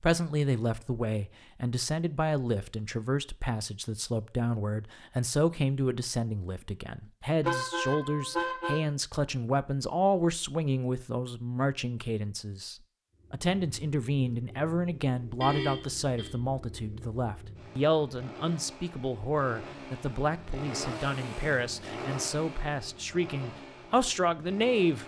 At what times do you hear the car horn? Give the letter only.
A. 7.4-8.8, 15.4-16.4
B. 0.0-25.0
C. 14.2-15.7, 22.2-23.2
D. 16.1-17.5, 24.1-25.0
A.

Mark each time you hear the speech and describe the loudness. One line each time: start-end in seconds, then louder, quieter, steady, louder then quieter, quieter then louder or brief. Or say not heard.
0.0-25.0 steady.